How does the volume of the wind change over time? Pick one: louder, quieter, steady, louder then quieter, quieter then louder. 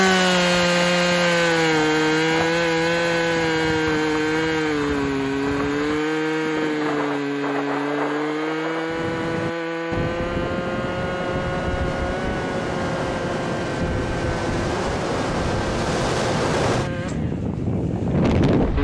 louder.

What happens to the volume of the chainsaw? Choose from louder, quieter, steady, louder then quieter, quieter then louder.
quieter.